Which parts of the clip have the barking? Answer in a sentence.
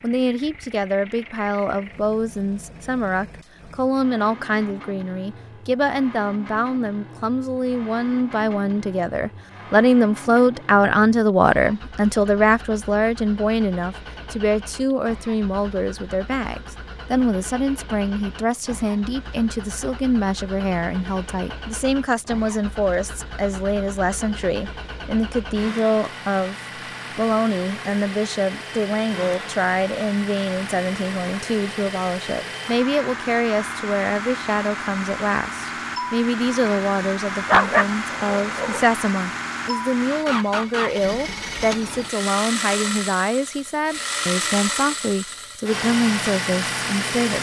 The barking can be heard from 37.5 to 38.9 s.